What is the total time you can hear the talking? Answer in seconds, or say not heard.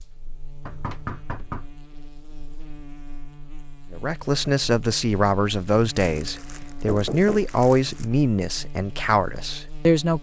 6 s.